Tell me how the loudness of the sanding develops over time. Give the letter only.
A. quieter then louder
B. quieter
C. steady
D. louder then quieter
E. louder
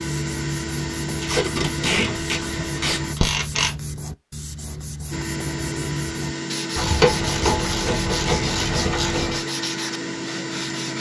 C.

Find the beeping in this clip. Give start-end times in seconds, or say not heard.
not heard.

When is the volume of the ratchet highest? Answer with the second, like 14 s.
7 s.